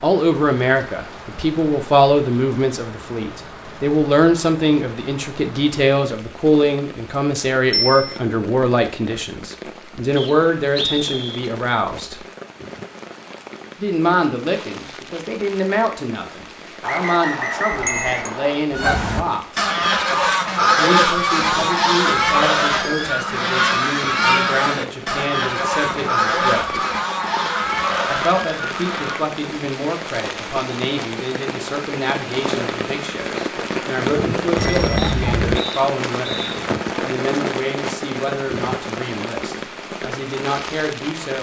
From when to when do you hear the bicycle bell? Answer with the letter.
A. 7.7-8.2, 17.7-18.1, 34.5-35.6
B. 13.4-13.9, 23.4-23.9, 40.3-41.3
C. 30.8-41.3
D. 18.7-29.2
A.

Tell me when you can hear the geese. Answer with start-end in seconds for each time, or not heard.
18.7-29.2.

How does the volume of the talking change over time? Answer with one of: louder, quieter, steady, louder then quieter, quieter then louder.
quieter.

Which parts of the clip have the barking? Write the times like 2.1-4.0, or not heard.
not heard.